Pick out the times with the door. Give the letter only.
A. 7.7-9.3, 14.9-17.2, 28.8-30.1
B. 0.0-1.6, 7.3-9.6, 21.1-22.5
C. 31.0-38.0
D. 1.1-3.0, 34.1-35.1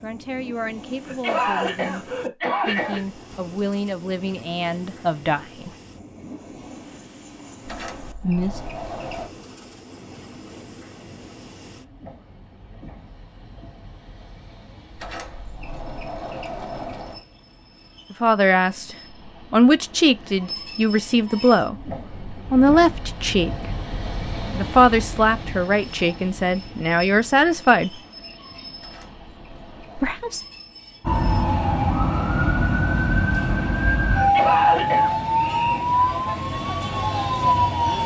A.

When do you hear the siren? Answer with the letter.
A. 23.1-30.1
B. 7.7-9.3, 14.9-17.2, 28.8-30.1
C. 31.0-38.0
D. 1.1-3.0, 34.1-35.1
C.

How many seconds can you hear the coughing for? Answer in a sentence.
You can hear the coughing for 3 seconds altogether.